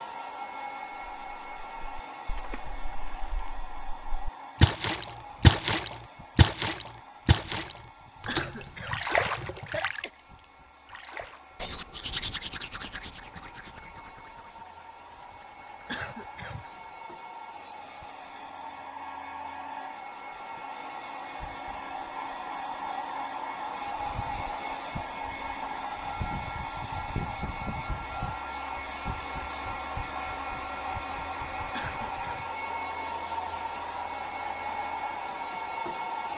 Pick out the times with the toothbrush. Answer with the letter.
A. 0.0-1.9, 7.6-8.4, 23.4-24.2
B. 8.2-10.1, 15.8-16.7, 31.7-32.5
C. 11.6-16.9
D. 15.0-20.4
C.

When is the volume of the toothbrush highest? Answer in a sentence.
The volume of the toothbrush peaks at 12 seconds.